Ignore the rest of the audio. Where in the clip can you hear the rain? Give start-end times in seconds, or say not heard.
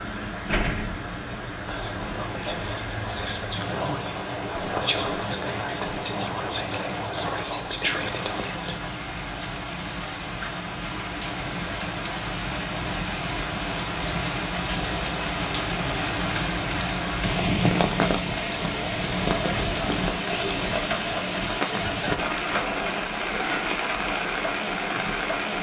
0.0-25.5.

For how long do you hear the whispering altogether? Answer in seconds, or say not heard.
8 s.